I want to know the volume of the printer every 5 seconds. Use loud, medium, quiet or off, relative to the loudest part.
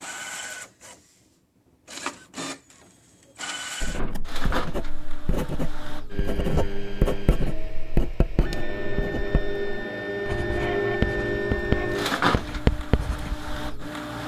medium, medium, loud.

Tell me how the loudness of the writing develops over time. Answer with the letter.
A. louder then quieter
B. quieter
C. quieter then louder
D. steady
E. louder
E.